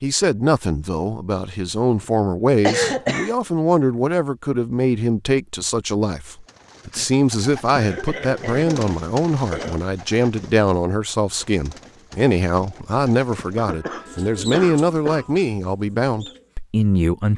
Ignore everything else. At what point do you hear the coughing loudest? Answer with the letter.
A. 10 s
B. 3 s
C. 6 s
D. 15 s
B.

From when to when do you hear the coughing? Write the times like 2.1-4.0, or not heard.
2.6-3.3, 7.8-9.8, 13.6-15.3.